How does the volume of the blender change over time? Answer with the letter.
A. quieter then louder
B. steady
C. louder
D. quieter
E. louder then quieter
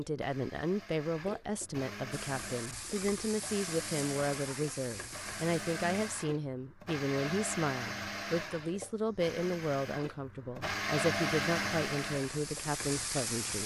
C.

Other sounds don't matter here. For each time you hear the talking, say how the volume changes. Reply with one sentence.
You can hear the talking from 0.0 to 13.6 s, at a steady volume.